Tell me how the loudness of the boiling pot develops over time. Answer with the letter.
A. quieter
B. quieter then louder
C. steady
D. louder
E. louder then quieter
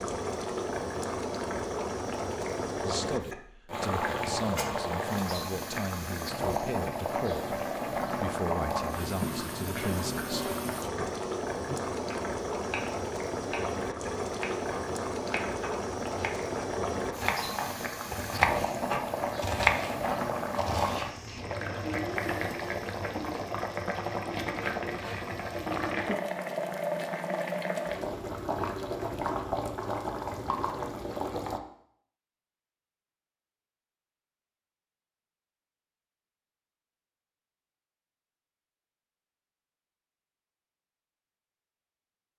C.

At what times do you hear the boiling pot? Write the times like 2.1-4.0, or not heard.
0.0-31.6.